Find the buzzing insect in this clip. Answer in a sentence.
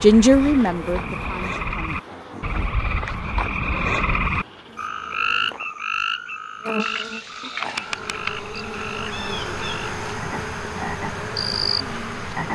You can hear the buzzing insect from 0.0 to 12.5 s.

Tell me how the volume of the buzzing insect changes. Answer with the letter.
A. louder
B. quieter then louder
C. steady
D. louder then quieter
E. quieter
B.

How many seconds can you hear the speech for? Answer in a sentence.
You can hear the speech for 2 seconds altogether.